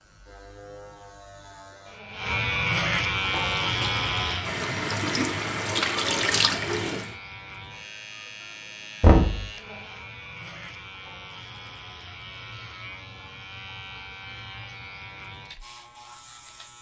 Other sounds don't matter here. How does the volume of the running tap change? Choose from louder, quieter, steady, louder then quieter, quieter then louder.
louder.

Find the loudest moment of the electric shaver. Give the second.
3 s.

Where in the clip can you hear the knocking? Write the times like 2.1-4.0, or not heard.
9.0-9.4.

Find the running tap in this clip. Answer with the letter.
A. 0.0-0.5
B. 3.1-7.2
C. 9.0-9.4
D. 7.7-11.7
B.